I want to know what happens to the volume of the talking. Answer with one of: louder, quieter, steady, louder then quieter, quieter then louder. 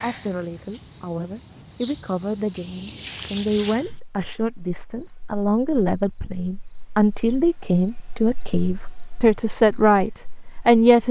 louder.